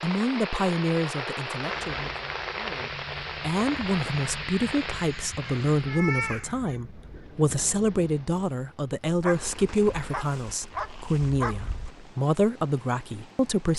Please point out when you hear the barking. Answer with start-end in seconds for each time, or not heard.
9.1-11.9.